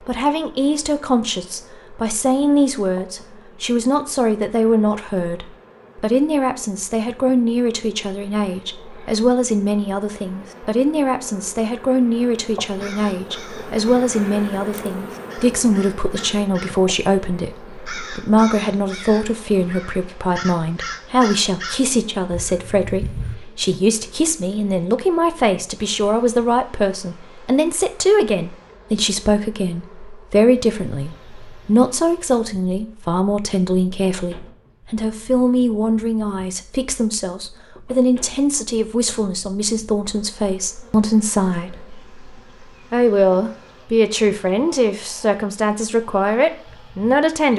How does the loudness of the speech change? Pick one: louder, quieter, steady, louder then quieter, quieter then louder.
steady.